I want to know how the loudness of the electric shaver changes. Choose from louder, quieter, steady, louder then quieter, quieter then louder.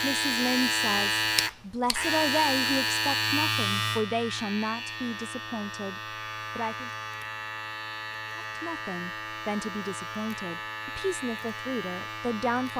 quieter.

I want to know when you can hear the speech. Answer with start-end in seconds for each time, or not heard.
0.0-6.9, 8.3-12.7.